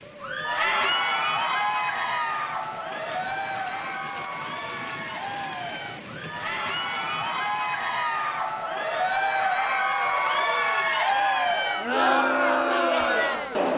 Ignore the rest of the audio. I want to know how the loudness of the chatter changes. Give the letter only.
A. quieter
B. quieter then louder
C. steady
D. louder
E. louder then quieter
B.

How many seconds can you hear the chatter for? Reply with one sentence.
The chatter can be heard for 14 seconds in total.